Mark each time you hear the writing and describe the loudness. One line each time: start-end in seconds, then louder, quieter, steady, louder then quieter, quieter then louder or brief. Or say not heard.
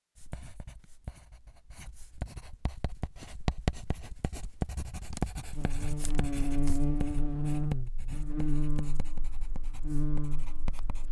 0.1-11.0 louder then quieter.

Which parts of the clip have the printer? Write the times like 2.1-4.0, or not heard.
not heard.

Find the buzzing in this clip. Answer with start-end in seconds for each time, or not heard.
5.5-11.0.